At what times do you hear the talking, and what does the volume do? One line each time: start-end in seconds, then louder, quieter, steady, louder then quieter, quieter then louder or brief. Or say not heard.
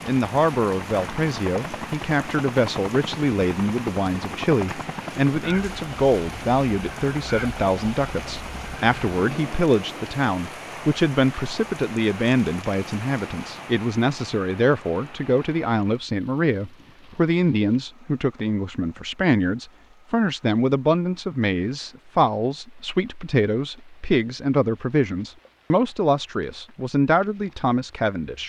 0.0-28.4 steady.